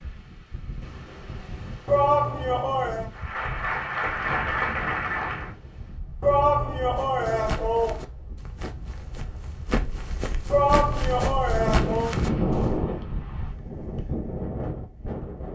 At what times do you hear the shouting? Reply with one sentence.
The shouting can be heard from 1.9 to 3.0 s, from 6.2 to 8.0 s and from 10.5 to 12.2 s.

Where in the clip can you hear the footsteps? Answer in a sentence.
You can hear the footsteps from 7.0 to 12.8 s.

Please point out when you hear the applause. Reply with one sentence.
The applause can be heard from 3.1 to 5.5 s.